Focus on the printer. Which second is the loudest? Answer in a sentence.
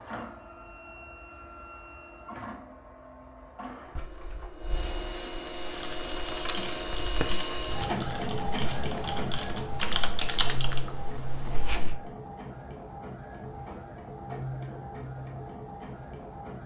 The loudest moment of the printer is at 8 seconds.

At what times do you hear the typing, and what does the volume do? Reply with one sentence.
The typing can be heard from 5.7 to 11.9 s, getting louder then quieter.